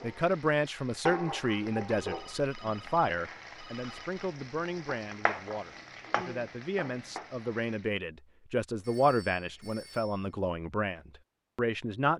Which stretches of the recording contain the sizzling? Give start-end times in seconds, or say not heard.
0.0-7.9.